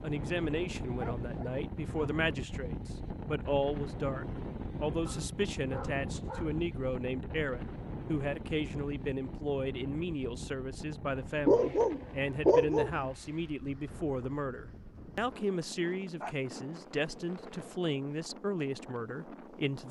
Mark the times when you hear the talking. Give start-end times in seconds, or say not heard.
0.0-19.8.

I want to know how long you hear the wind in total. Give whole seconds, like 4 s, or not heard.
20 s.